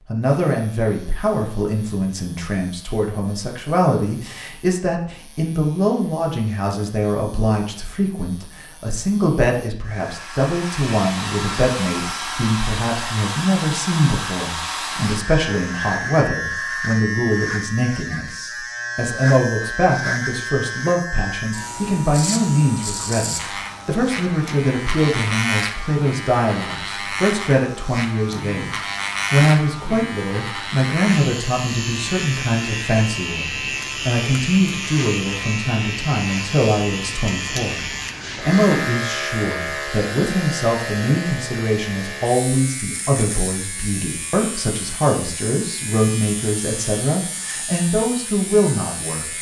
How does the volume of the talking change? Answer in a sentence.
The volume of the talking stays about the same.